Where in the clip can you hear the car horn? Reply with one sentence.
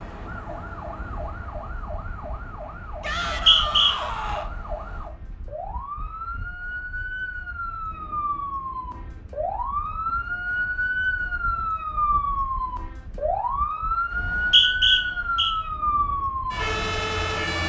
You can't hear the car horn here.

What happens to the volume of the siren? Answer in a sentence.
The loudness of the siren goes up.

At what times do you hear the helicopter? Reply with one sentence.
You can't hear the helicopter here.